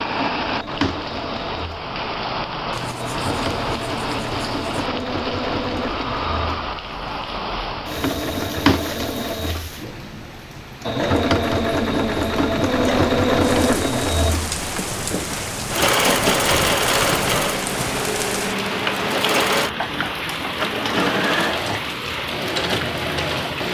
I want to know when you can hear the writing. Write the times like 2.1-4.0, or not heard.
2.7-4.9, 14.4-16.5.